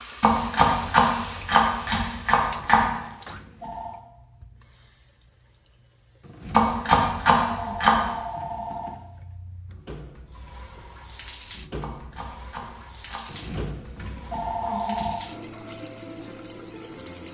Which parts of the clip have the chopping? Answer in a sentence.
You can hear the chopping from 0.2 to 2.9 s, from 6.5 to 8.1 s and from 11.8 to 13.3 s.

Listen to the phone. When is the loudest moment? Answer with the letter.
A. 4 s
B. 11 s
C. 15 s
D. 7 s
C.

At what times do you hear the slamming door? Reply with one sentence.
The slamming door can't be heard in this clip.